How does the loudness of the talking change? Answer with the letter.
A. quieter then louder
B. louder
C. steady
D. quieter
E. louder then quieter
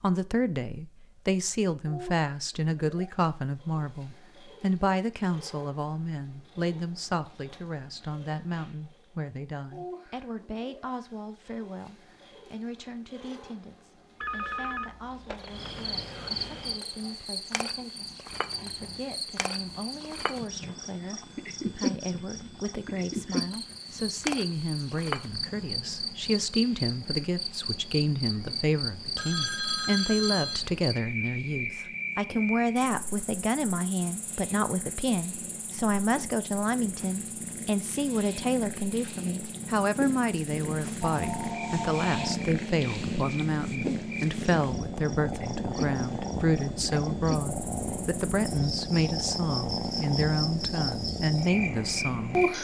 A.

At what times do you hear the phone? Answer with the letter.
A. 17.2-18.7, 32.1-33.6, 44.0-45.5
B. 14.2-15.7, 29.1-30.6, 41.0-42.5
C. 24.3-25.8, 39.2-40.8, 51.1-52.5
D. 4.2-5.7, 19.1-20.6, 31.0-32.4
B.